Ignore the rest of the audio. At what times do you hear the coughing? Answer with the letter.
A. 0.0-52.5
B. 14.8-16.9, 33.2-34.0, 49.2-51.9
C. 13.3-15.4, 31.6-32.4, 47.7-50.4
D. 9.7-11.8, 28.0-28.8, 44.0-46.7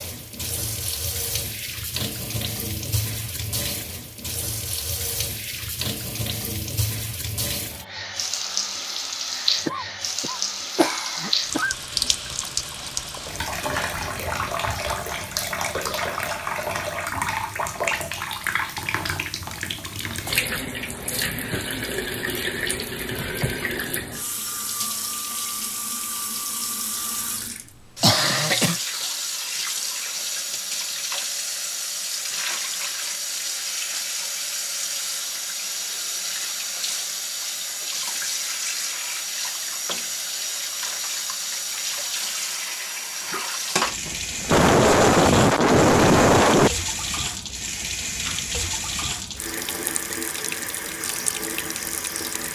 D.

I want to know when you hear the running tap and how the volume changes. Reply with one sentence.
The running tap can be heard from 0.0 to 52.5 s, at a steady volume.